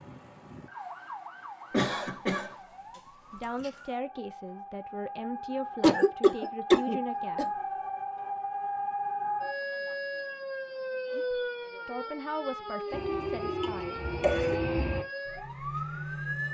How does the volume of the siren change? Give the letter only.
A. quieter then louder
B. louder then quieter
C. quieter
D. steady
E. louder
E.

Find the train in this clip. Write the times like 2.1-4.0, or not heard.
12.9-15.1.